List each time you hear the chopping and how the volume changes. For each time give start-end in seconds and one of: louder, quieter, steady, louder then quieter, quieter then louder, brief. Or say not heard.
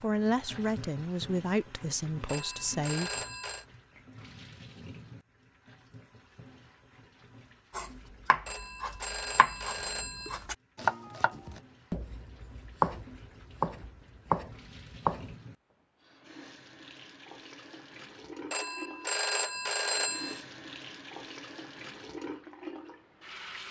7.8-15.3 quieter then louder.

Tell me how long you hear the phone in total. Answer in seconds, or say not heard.
5 s.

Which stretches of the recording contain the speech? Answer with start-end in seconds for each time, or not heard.
0.0-3.1.